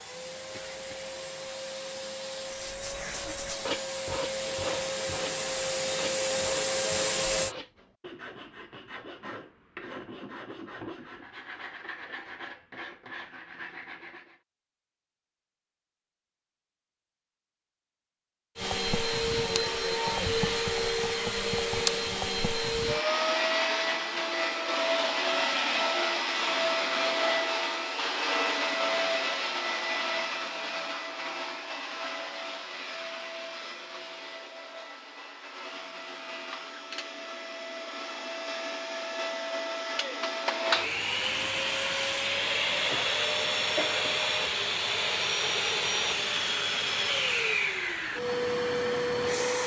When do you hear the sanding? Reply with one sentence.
You can hear the sanding from 2.5 to 14.4 s.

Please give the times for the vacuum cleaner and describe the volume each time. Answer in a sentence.
You can hear the vacuum cleaner from 0.0 to 7.5 s, getting louder; and from 18.6 to 49.6 s, getting quieter then louder.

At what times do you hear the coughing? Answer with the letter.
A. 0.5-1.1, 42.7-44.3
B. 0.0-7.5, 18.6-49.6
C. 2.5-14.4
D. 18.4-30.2
A.